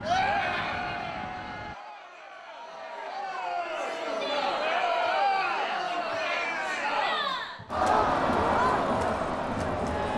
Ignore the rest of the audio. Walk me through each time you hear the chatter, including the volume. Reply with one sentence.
The chatter can be heard from 0.0 to 10.1 s, getting louder.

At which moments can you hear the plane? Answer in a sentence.
The plane can be heard from 0.0 to 1.8 s and from 8.0 to 10.1 s.